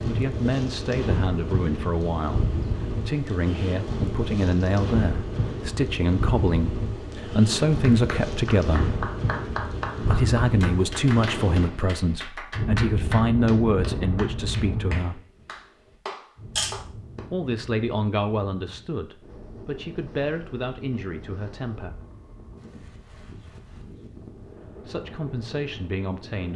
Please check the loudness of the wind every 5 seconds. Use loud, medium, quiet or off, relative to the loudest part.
loud, loud, loud, quiet, quiet, quiet.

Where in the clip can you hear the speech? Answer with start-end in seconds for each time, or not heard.
0.0-8.9, 10.0-15.2, 17.3-22.0, 24.9-26.5.